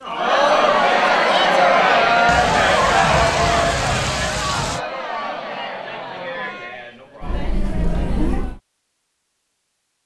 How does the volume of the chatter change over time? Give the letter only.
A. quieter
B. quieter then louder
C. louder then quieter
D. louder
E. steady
A.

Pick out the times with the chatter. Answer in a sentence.
You can hear the chatter from 0.0 to 8.6 s.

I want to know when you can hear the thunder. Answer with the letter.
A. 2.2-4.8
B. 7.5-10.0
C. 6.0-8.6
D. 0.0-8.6
A.